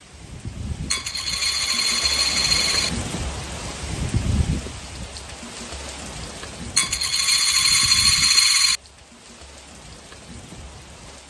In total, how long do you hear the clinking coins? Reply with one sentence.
You can hear the clinking coins for 4 seconds altogether.